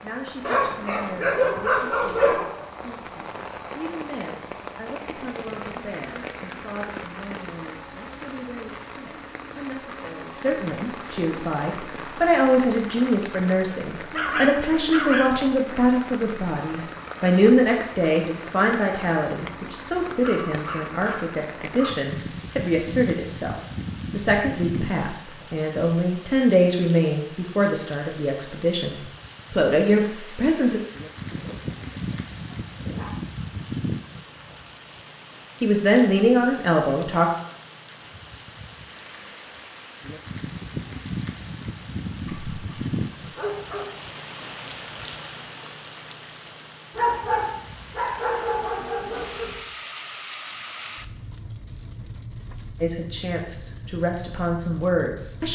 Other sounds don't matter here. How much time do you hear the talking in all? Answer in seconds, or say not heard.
35 s.